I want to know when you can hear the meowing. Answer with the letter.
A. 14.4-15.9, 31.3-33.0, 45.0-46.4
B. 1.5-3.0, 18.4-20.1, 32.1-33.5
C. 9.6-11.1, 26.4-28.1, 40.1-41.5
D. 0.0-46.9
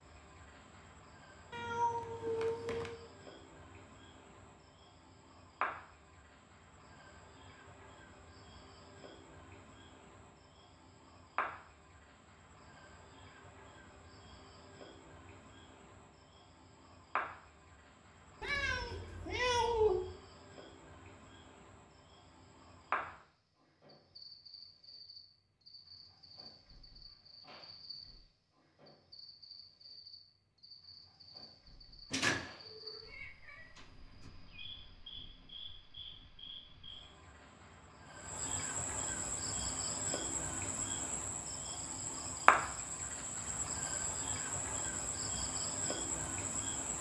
B.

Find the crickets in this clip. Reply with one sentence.
You can hear the crickets from 0.0 to 46.9 s.